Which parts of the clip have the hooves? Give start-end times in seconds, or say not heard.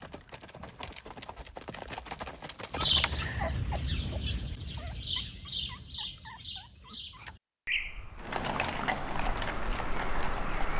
0.0-3.4, 8.2-10.7.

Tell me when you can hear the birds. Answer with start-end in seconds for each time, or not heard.
2.7-10.7.